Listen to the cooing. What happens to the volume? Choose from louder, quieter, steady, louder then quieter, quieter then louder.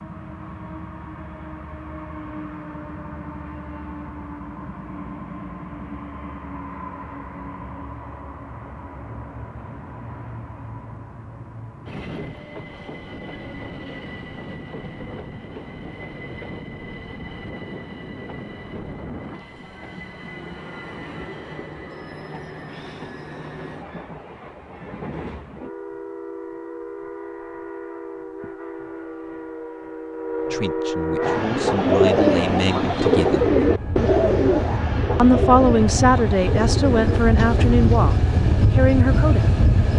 quieter.